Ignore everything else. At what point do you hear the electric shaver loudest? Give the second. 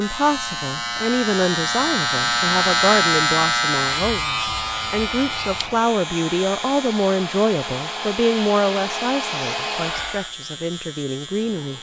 3 s.